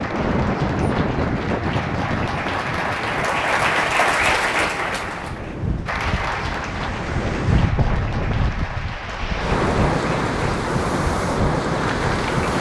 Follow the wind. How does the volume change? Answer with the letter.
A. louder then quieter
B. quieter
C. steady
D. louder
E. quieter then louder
E.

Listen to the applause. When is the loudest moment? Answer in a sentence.
The loudest moment of the applause is at 4 seconds.